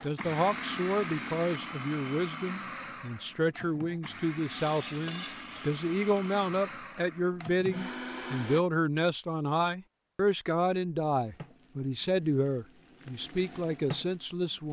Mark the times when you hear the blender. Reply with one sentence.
The blender can be heard from 0.0 to 8.7 s.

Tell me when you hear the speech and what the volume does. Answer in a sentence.
The speech can be heard from 0.0 to 14.6 s, at a steady volume.